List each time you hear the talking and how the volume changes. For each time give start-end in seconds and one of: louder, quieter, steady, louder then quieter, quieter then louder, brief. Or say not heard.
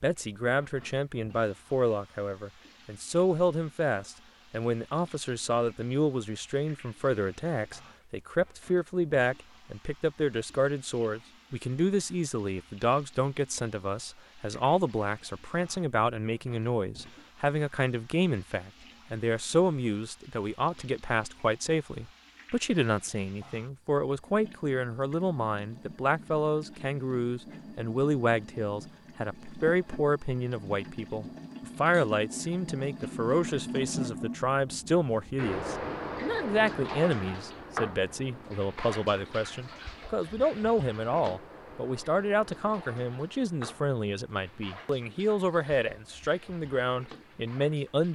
0.0-48.1 steady.